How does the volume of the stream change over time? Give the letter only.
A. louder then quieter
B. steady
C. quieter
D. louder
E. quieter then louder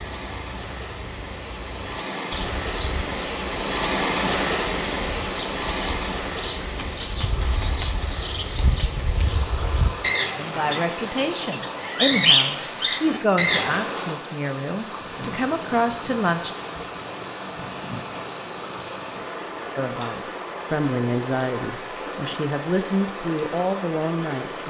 C.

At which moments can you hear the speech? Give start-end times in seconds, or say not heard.
10.3-16.5, 19.8-24.6.